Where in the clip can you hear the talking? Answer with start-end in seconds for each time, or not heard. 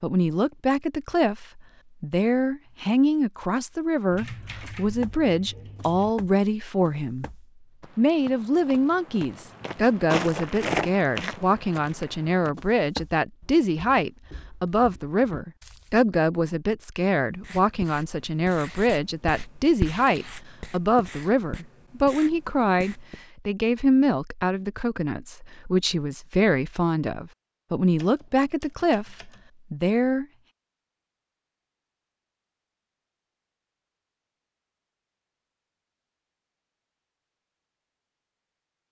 0.0-7.3, 8.0-30.2.